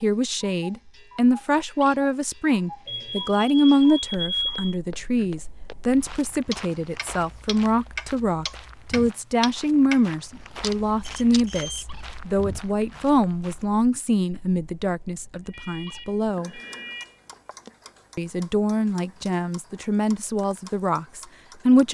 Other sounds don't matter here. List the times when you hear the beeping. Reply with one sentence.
You can hear the beeping from 2.9 to 4.8 s, from 11.0 to 11.8 s and from 15.4 to 17.2 s.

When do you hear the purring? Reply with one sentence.
You can't hear the purring here.